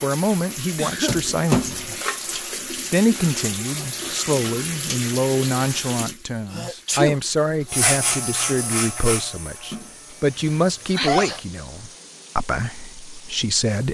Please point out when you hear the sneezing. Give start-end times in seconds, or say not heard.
0.8-1.2, 6.5-7.2, 10.3-11.4.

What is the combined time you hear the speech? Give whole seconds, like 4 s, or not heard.
13 s.